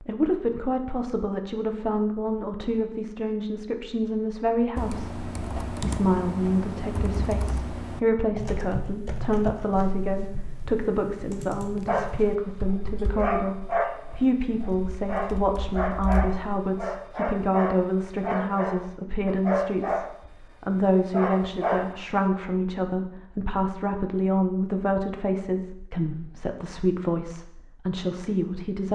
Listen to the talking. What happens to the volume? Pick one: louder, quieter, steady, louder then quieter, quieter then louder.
steady.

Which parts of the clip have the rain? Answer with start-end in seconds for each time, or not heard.
not heard.